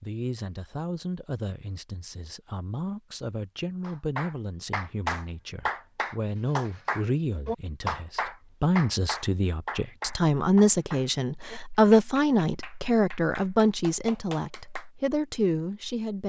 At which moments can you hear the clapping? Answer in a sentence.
You can hear the clapping from 3.8 to 14.8 s.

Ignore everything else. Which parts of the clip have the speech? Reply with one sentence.
You can hear the speech from 0.0 to 16.2 s.